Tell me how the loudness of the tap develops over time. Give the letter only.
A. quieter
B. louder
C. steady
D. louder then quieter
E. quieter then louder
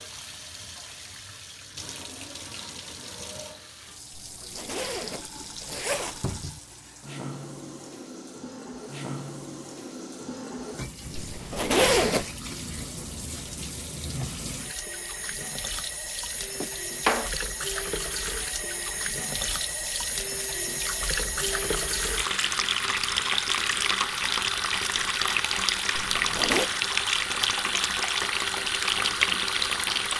B.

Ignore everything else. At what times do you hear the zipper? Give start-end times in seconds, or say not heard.
4.1-6.5, 11.2-12.2, 25.9-26.7.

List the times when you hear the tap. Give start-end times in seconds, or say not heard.
0.0-30.1.